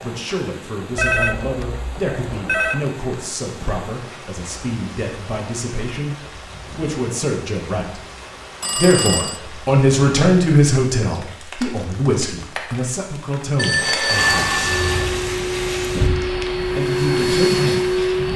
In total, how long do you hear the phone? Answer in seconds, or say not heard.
4 s.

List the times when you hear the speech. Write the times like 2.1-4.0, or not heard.
0.0-8.0, 8.8-14.7, 16.8-18.3.